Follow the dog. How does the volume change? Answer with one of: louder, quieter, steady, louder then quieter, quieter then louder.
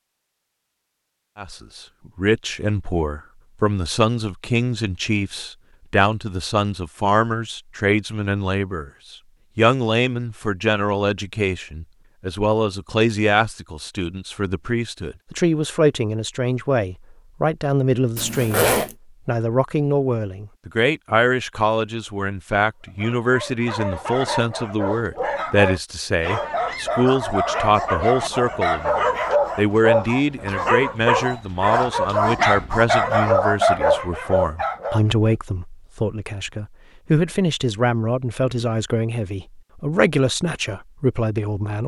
louder.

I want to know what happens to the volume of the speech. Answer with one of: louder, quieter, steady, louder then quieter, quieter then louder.
steady.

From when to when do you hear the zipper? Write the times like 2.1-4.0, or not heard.
18.1-18.9.